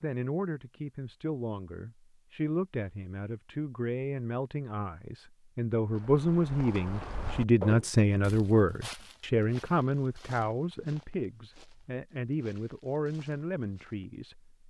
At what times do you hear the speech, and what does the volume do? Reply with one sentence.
The speech can be heard from 0.0 to 14.6 s, getting louder then quieter.